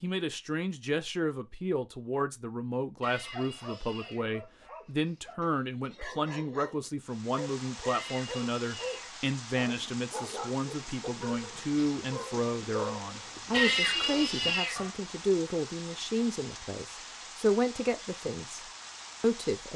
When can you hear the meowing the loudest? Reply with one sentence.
The volume of the meowing peaks at 14 seconds.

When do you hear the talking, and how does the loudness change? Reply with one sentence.
You can hear the talking from 0.0 to 19.7 s, at a steady volume.